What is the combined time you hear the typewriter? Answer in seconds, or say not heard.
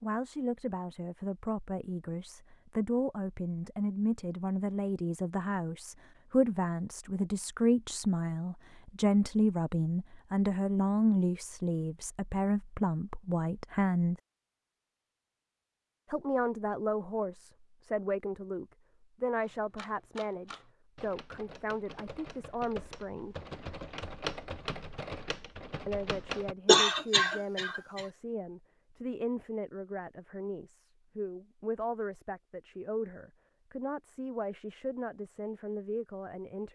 7 s.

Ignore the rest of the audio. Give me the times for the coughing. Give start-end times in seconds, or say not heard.
26.6-28.1.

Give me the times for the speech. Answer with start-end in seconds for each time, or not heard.
0.0-14.2, 16.1-23.4, 25.9-36.7.